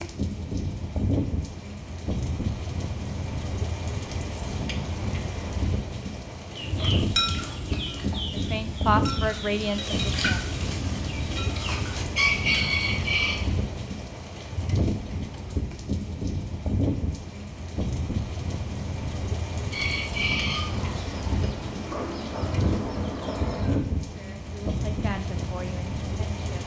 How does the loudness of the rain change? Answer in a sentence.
The loudness of the rain stays about the same.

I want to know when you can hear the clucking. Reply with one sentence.
You can hear the clucking from 6.5 to 13.4 s and from 19.7 to 23.8 s.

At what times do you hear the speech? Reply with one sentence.
The speech can be heard from 8.3 to 10.4 s and from 24.1 to 26.6 s.